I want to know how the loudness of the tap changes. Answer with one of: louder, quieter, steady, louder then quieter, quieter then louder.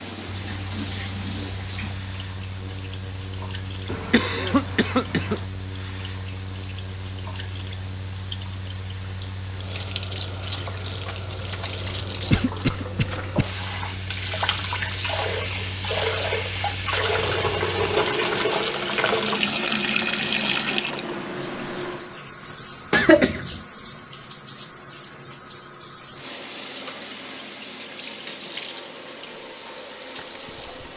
louder then quieter.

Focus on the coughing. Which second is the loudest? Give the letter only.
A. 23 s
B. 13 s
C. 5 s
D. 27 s
A.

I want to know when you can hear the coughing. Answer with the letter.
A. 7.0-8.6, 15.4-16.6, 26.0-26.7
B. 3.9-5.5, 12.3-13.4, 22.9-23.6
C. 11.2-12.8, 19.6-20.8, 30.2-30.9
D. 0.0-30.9
B.